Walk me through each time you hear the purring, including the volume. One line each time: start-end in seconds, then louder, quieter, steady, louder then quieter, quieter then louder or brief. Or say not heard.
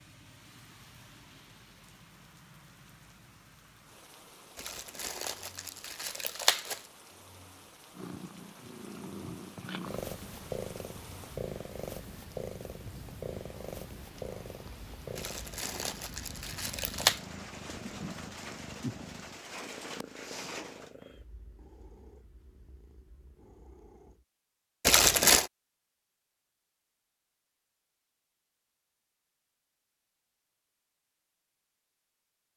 8.0-24.2 quieter.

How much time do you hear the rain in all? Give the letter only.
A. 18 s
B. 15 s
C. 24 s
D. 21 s
D.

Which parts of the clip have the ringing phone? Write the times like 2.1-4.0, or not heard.
not heard.